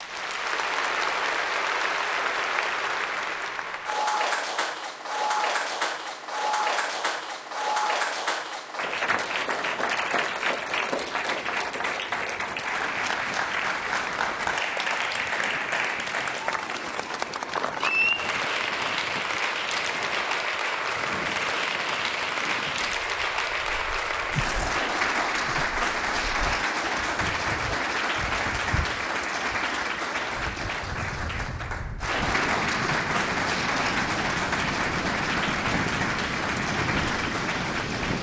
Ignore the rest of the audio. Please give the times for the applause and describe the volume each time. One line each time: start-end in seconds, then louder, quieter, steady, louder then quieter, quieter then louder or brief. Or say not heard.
0.0-38.1 steady.